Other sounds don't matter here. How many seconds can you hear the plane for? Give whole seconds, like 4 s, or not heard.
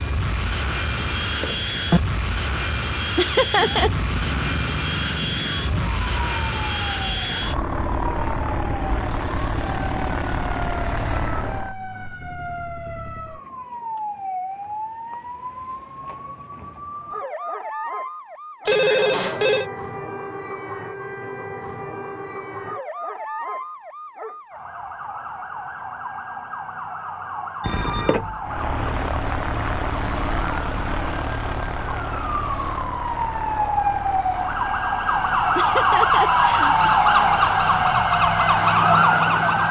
23 s.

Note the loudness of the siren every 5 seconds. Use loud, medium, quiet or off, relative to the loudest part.
quiet, quiet, quiet, quiet, quiet, quiet, medium, loud.